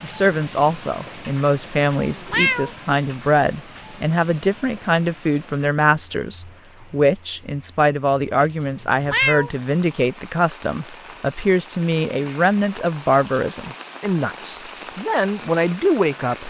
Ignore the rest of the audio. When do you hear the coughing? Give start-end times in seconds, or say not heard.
not heard.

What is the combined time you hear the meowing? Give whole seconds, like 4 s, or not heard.
3 s.